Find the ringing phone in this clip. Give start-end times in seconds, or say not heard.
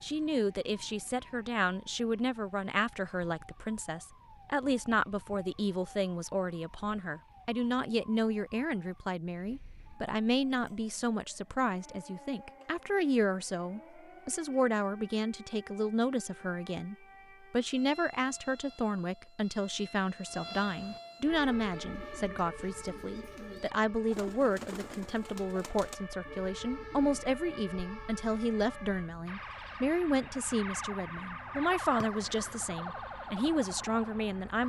not heard.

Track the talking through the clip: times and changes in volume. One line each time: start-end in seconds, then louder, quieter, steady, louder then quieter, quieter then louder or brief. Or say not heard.
0.0-34.6 steady.